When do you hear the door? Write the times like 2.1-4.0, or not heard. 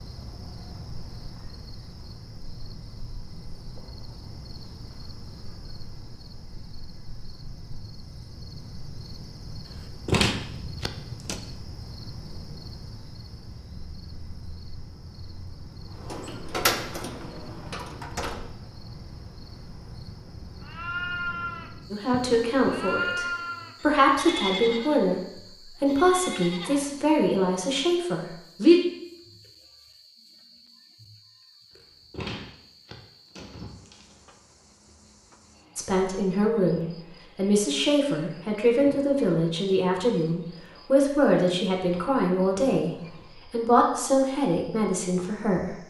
10.1-11.4, 15.9-18.5, 32.1-34.1.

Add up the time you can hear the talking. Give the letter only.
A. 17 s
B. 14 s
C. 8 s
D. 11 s
A.